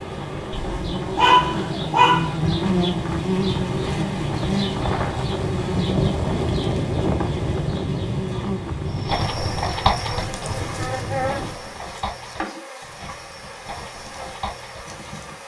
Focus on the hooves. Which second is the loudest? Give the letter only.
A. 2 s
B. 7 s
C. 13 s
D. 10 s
D.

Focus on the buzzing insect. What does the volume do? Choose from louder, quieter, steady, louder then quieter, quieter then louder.
quieter.